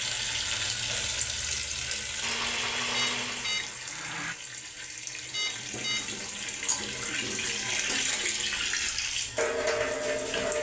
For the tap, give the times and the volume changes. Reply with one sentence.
You can hear the tap from 0.0 to 10.5 s, getting quieter then louder.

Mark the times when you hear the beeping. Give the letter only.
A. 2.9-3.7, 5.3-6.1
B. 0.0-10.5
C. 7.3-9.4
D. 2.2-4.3
A.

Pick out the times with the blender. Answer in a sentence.
The blender can be heard from 2.2 to 4.3 s.